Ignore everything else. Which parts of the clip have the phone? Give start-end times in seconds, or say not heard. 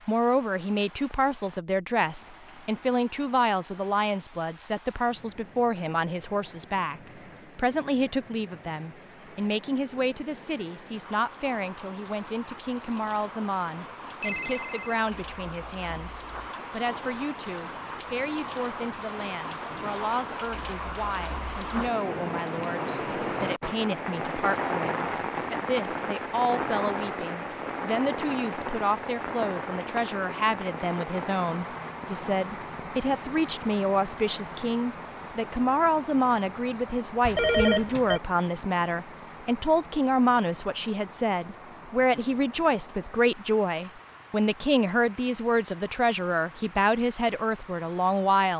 14.2-15.0, 37.2-38.2.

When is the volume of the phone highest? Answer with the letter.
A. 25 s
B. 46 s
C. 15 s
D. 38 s
D.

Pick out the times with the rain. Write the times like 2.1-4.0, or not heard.
0.0-48.5.